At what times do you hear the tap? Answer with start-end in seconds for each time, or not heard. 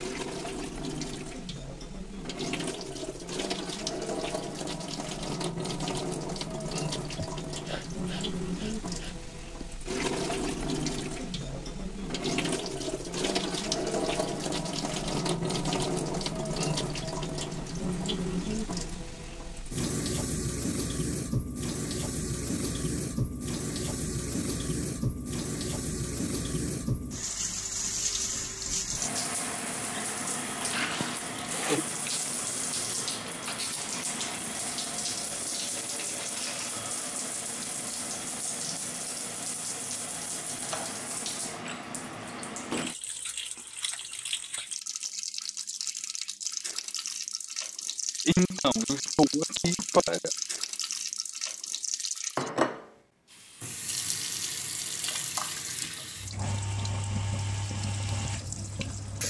0.0-59.2.